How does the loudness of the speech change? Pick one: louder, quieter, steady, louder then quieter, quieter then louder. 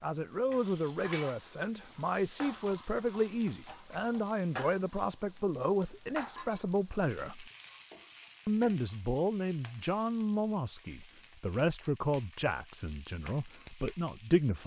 steady.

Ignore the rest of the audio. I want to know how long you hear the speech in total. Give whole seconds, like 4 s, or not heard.
14 s.